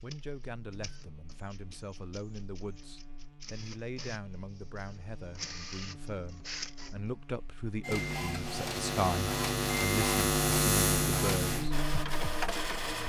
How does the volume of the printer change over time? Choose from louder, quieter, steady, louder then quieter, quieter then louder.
louder.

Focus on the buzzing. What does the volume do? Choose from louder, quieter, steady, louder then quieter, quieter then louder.
louder.